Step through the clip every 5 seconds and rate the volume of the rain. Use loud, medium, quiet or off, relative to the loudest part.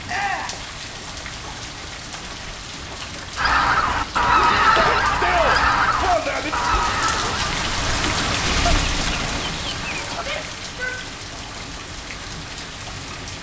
medium, loud, medium.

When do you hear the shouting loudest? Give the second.
5 s.